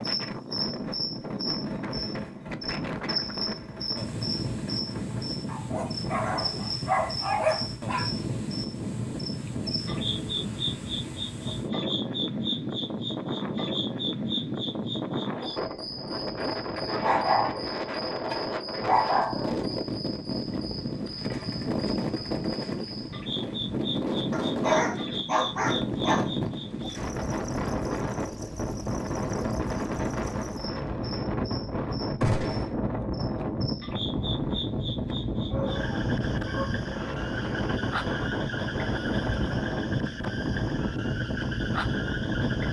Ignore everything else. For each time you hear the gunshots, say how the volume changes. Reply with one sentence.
The gunshots can be heard from 0.8 to 5.4 s, at a steady volume; briefly from 21.2 to 22.9 s; and briefly from 32.2 to 32.8 s.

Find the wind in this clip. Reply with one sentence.
The wind can be heard from 0.0 to 42.6 s.